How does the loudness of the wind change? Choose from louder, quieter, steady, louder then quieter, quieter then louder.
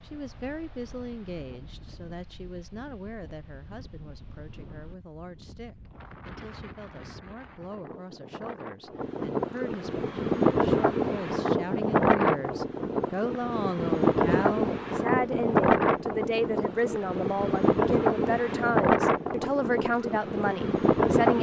louder.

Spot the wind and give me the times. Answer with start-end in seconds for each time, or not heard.
0.0-21.3.